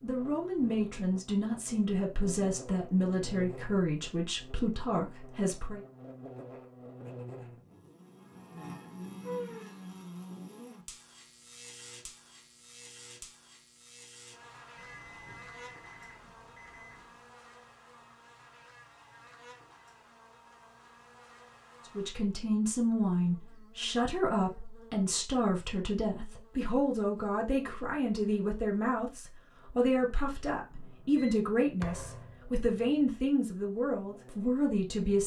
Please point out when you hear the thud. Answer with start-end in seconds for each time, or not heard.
31.8-32.5.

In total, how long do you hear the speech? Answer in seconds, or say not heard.
19 s.